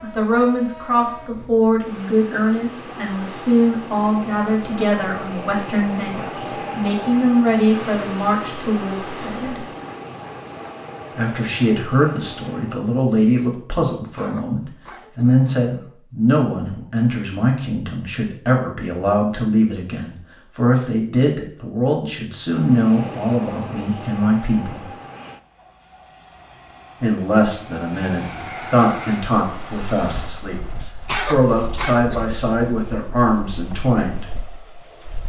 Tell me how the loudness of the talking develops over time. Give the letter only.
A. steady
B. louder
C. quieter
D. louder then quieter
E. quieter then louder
A.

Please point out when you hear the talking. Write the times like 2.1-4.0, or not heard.
0.0-9.7, 11.2-24.9, 27.0-34.2.